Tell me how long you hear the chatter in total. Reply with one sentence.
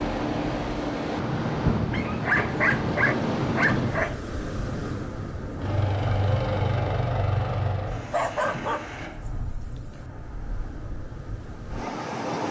The chatter can't be heard in this clip.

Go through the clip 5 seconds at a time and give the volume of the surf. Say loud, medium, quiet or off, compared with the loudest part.
loud, medium, medium.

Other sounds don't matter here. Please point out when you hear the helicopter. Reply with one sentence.
The helicopter can be heard from 5.6 to 9.1 s.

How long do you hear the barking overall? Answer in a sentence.
The barking can be heard for 4 seconds in total.